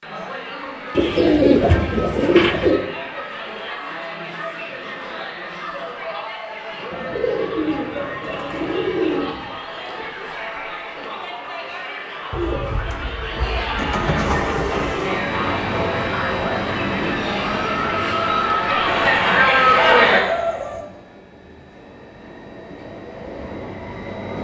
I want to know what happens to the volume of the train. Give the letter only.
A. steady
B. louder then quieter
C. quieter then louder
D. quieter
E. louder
C.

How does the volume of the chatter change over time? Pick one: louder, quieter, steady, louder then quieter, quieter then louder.
louder.